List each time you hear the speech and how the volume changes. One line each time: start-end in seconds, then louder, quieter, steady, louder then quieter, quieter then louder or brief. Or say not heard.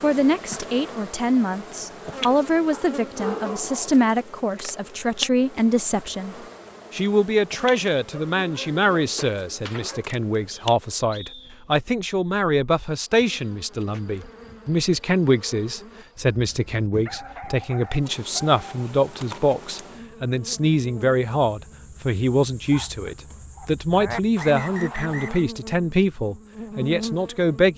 0.0-27.7 steady.